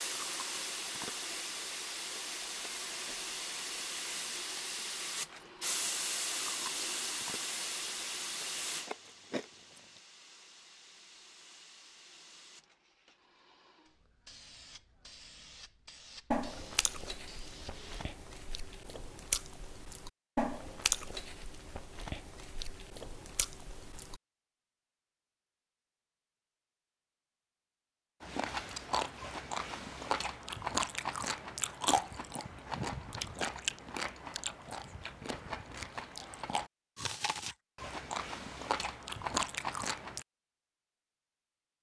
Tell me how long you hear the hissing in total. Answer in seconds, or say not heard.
18 s.